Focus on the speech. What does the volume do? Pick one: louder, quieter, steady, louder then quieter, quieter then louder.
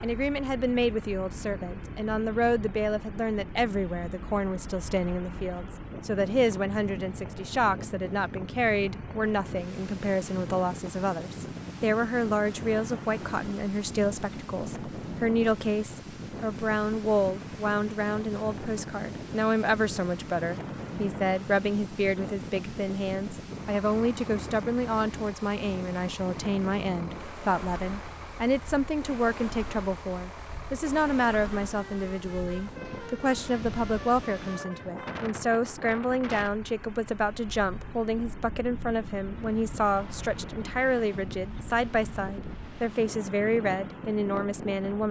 steady.